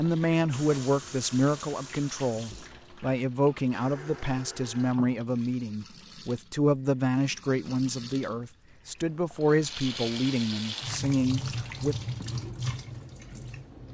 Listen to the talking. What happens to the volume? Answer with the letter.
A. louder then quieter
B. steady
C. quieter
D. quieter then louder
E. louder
B.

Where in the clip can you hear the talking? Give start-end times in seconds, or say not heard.
0.0-11.9.